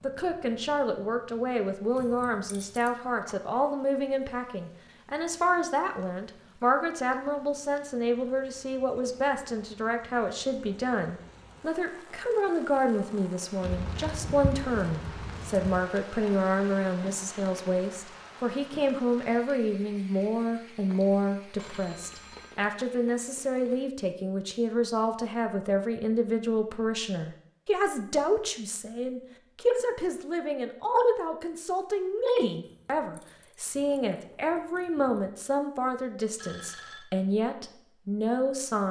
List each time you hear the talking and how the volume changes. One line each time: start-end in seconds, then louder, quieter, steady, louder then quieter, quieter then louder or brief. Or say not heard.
0.0-38.8 steady.